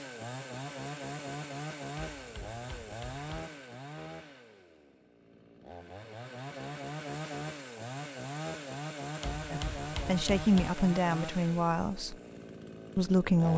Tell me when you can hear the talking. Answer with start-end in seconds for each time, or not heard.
9.5-12.2, 12.9-13.5.